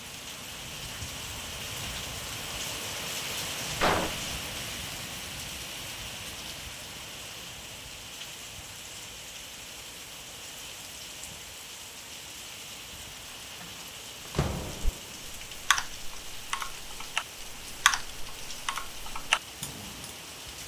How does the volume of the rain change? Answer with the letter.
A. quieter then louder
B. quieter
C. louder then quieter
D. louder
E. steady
B.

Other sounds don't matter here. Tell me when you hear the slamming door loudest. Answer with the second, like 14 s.
4 s.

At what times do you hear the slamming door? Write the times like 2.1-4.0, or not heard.
3.8-4.3, 13.6-15.2.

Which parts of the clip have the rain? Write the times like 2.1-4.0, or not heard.
0.0-20.6.